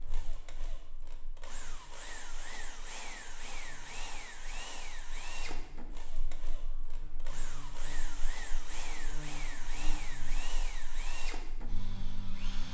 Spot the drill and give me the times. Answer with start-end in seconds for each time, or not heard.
0.0-12.6.